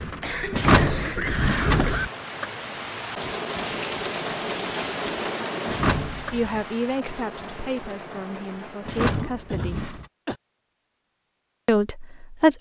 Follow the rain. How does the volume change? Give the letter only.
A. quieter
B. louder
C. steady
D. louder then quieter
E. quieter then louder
D.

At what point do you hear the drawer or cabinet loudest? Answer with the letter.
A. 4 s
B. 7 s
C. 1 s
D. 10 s
C.